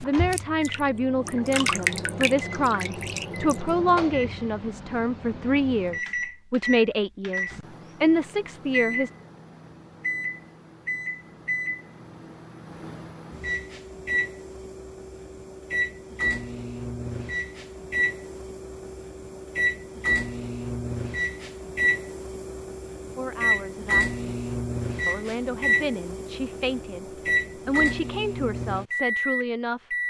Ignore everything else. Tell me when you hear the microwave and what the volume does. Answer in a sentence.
The microwave can be heard from 0.0 to 30.0 s, getting louder.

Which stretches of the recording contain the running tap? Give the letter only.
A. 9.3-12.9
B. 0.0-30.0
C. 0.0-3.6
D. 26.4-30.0
C.